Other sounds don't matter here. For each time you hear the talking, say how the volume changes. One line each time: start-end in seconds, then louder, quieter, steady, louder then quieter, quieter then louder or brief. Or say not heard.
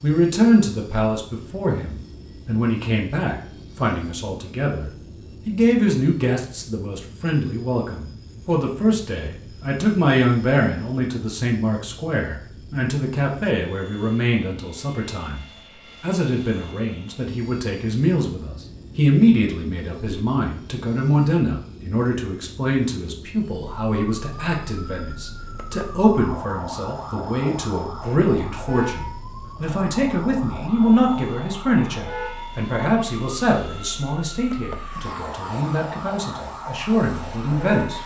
0.0-38.0 steady.